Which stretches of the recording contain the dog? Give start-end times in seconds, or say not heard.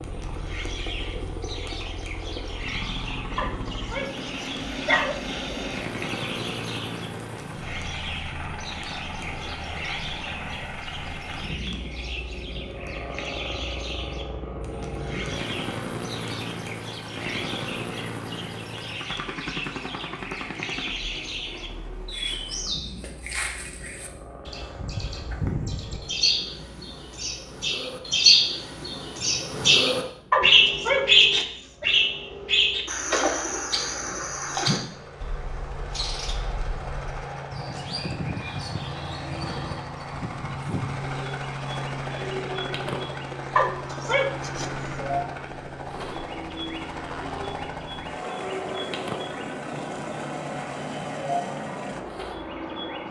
3.4-5.2, 30.3-31.9, 43.5-44.7.